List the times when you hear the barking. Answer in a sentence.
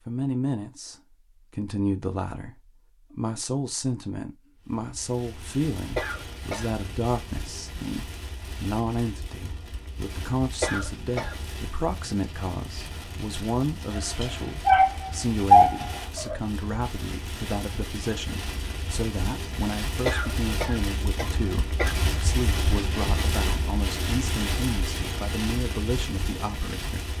You can hear the barking from 13.9 to 16.4 s.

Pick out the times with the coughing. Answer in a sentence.
You can hear the coughing from 6.0 to 6.7 s, from 10.6 to 11.3 s and from 20.1 to 21.9 s.